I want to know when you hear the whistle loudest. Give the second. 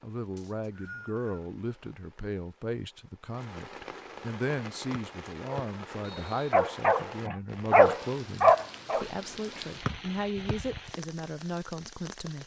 10 s.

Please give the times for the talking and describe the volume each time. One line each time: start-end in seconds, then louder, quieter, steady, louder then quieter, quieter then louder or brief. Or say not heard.
0.0-12.4 steady.